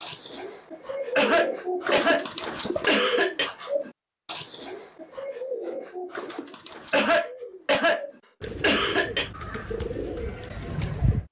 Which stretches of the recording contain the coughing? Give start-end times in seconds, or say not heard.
1.1-3.5, 6.9-9.3.